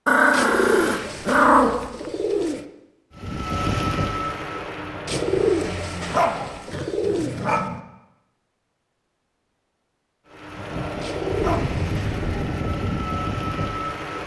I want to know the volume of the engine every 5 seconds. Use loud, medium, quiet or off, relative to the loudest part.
loud, medium, loud.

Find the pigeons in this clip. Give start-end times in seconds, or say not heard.
0.3-2.6, 5.0-7.7, 11.0-12.3.